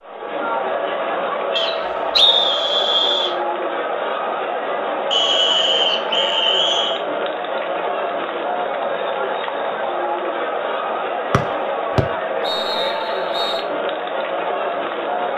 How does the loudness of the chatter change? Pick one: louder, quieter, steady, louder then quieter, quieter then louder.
steady.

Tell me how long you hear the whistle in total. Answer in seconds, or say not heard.
6 s.